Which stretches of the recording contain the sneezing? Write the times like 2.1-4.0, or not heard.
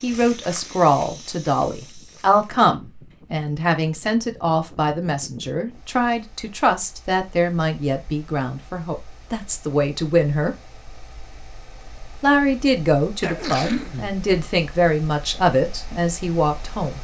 13.2-14.2.